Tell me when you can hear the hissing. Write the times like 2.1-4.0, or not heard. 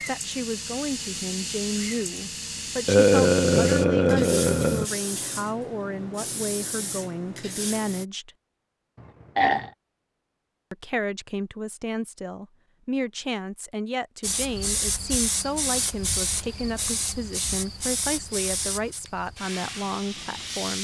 0.0-8.1, 14.2-20.7.